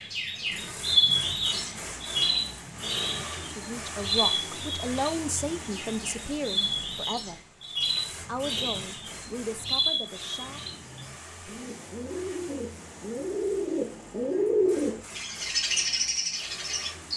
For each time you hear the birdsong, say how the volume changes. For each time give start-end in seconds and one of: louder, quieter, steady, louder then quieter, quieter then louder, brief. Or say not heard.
0.0-17.1 quieter then louder.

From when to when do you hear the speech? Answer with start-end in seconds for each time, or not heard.
3.5-7.4, 8.2-10.7.